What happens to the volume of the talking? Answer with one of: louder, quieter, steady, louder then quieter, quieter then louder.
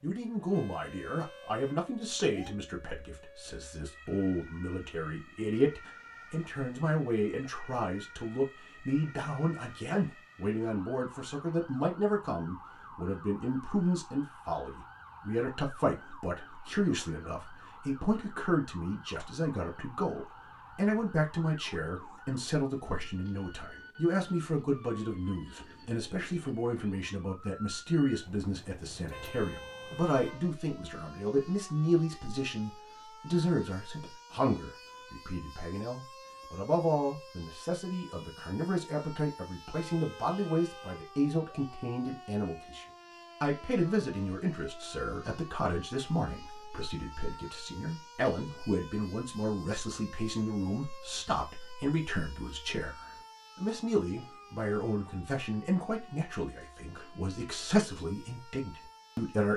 steady.